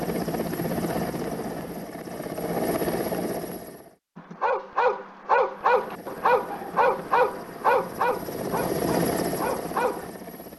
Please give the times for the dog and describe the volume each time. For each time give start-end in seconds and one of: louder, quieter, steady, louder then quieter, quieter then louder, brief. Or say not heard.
4.2-10.1 quieter.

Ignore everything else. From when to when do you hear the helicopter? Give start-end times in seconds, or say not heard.
0.0-4.0, 5.5-10.5.